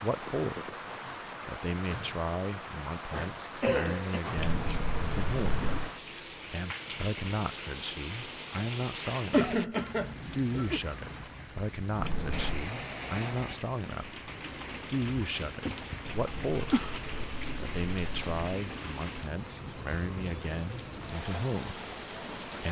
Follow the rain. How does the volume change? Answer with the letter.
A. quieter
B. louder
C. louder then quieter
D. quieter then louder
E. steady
E.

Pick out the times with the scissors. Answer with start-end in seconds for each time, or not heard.
4.3-5.9, 12.0-12.7, 16.1-18.4.